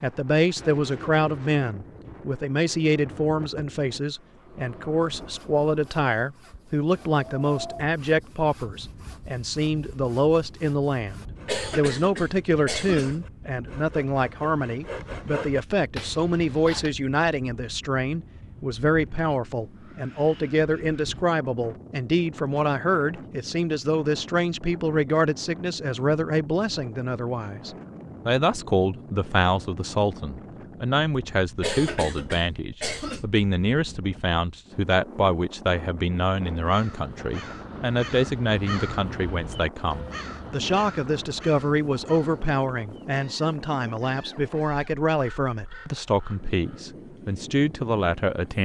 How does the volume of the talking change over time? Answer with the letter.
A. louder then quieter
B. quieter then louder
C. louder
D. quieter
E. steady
E.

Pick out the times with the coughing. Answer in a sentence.
You can hear the coughing from 11.4 to 13.3 s and from 31.6 to 33.2 s.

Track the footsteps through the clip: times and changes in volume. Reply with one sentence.
You can't hear the footsteps here.